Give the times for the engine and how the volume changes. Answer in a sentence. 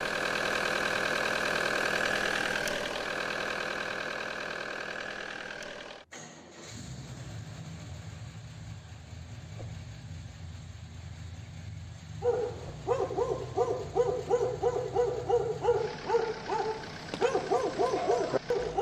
You can hear the engine from 0.0 to 18.7 s, getting quieter.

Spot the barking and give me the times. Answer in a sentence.
You can hear the barking from 12.2 to 18.7 s.